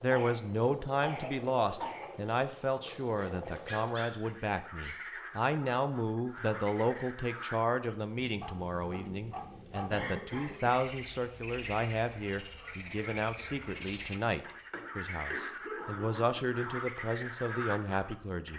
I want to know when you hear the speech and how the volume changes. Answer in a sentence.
The speech can be heard from 0.0 to 18.5 s, at a steady volume.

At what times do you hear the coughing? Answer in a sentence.
The coughing can be heard from 0.1 to 2.1 s, from 9.9 to 10.8 s and from 14.7 to 16.4 s.